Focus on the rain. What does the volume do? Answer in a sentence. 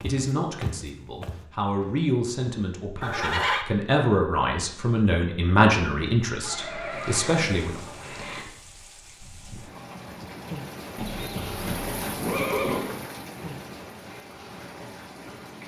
The loudness of the rain goes up, then down.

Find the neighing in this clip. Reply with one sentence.
The neighing can be heard from 3.0 to 3.6 s, from 6.4 to 8.4 s and from 10.9 to 12.9 s.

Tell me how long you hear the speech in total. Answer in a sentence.
The speech can be heard for 8 seconds in total.